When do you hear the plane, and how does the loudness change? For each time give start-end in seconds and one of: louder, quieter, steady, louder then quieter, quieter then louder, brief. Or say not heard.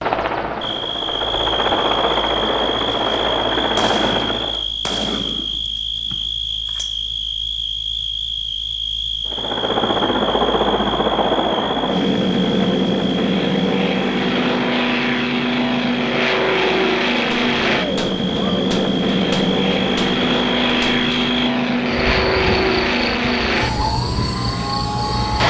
0.0-4.7 louder
9.2-25.4 steady.